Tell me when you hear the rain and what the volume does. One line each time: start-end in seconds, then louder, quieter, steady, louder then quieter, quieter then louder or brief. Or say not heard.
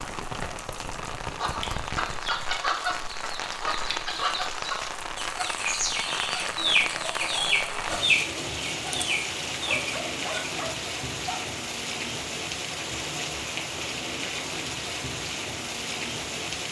0.0-16.6 steady.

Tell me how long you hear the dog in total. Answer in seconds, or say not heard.
2 s.